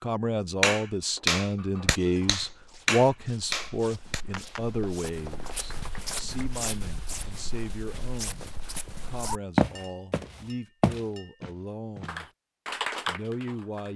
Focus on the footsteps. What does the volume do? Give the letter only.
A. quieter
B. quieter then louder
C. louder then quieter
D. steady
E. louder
E.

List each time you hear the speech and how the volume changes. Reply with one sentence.
The speech can be heard from 0.0 to 12.2 s, getting quieter; and briefly from 13.1 to 13.9 s.